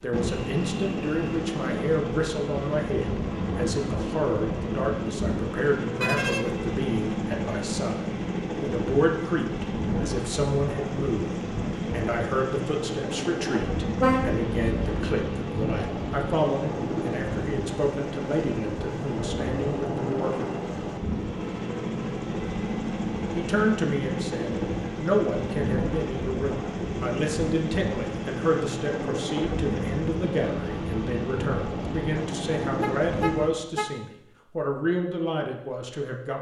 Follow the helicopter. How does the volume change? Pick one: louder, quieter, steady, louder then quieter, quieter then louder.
steady.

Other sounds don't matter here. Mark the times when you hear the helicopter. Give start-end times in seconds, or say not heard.
0.0-33.6.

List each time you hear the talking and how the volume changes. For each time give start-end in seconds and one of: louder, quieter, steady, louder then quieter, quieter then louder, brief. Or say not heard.
0.0-20.6 steady
23.4-36.3 steady.